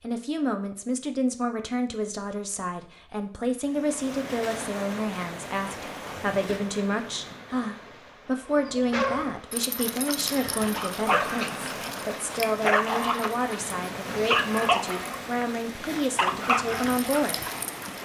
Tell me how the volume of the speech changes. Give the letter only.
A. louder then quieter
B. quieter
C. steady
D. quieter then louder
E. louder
C.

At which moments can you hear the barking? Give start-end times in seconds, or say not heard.
8.5-18.0.